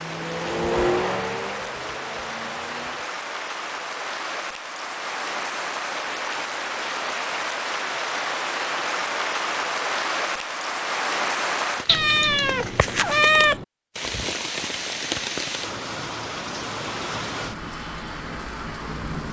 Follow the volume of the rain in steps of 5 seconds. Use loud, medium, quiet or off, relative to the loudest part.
medium, loud, loud, loud.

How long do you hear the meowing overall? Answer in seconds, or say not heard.
2 s.